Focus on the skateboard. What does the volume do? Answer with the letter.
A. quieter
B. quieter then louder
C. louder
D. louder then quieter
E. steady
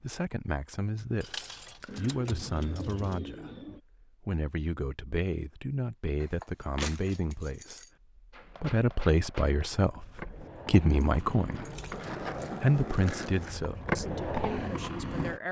C.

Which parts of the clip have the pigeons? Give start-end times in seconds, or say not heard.
1.9-3.8.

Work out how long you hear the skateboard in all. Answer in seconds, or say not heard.
7 s.